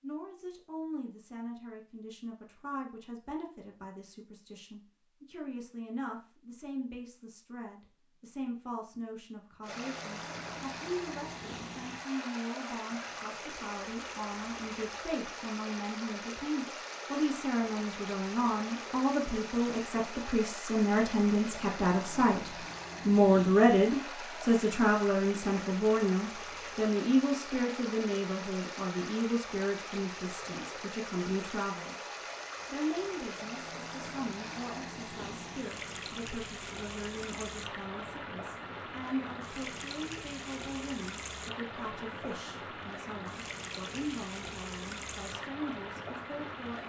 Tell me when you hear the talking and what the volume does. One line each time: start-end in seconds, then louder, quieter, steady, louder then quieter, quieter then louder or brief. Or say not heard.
0.0-46.8 louder then quieter.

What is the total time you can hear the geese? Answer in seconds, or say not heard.
not heard.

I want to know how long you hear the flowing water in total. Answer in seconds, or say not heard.
37 s.